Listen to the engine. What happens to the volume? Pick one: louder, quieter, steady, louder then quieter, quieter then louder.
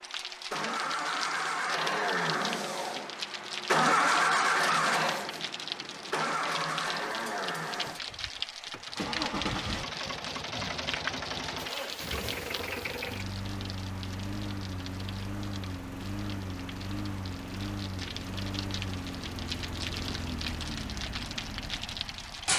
quieter.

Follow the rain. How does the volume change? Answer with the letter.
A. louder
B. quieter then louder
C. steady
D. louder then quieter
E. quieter
B.